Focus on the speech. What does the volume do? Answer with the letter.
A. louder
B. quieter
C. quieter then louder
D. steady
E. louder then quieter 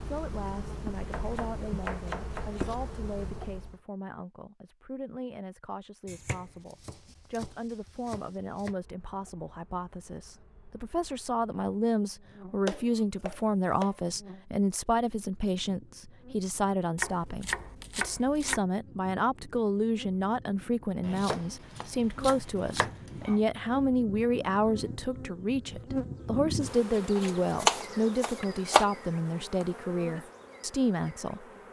A.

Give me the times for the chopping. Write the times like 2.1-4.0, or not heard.
1.1-2.8, 6.0-8.8, 12.7-14.0, 16.9-18.6, 21.0-23.4, 27.1-28.9.